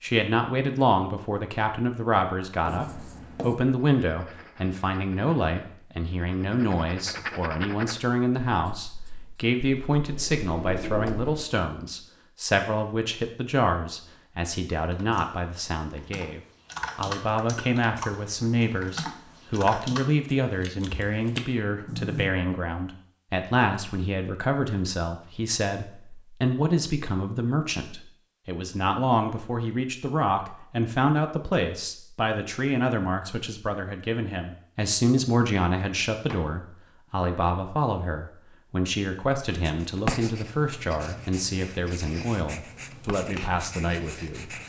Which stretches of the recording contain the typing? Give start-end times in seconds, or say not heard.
14.8-22.3.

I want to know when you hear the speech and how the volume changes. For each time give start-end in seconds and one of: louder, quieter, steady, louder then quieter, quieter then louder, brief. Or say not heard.
0.0-44.5 steady.